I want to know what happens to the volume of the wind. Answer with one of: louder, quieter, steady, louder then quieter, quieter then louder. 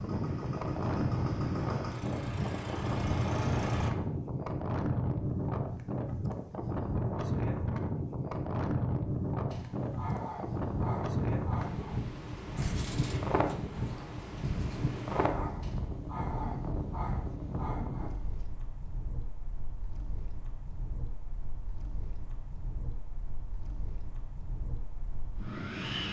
quieter.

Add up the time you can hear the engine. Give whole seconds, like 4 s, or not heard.
4 s.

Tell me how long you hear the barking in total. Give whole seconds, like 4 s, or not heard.
9 s.